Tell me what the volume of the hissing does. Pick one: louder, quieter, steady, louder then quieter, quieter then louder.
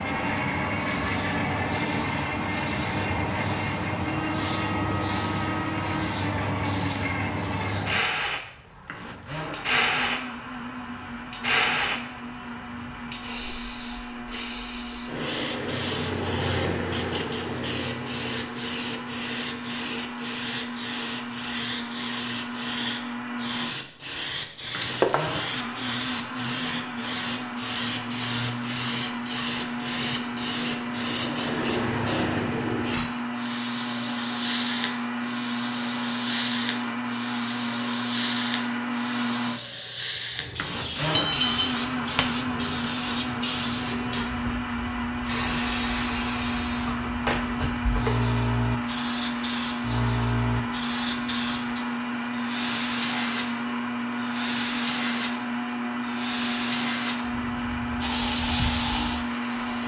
steady.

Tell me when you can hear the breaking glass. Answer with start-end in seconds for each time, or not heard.
24.8-25.4, 41.1-42.2.